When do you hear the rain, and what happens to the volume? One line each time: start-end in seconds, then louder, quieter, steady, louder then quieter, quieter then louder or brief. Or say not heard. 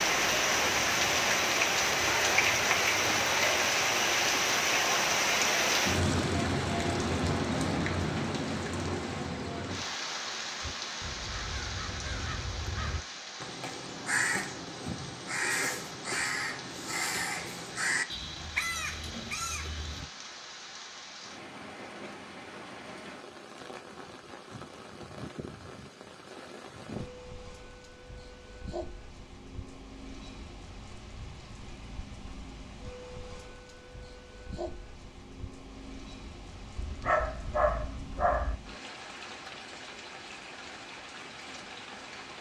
0.0-42.3 quieter.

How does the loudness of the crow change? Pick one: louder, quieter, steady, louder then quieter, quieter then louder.
louder.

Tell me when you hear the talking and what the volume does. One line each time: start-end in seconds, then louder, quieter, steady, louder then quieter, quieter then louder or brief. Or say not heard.
not heard.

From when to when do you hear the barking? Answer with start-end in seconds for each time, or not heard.
36.8-38.5.